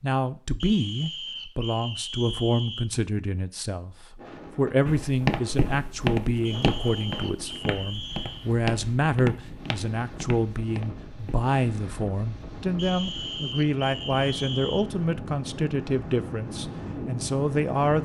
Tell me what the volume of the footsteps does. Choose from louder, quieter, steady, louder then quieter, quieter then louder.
quieter.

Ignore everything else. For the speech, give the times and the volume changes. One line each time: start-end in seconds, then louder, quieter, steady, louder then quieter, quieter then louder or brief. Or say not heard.
0.0-17.9 steady.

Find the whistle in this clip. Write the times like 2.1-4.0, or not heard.
0.6-2.9, 6.5-8.5, 12.8-14.9.